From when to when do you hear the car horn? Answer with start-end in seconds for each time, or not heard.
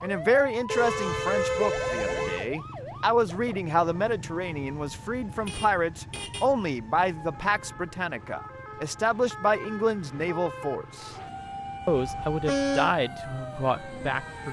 0.7-2.5, 5.3-6.5, 11.8-12.9.